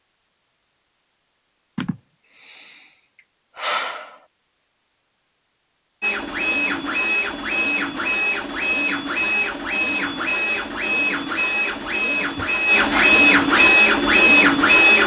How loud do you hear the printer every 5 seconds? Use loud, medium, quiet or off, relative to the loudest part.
off, medium, loud.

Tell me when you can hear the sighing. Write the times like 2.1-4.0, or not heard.
1.8-4.2, 12.3-13.1.